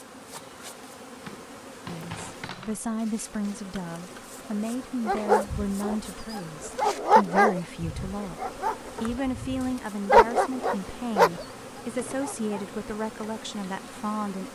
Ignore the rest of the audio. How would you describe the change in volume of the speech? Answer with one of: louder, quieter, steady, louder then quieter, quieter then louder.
steady.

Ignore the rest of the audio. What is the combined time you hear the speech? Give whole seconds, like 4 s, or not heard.
12 s.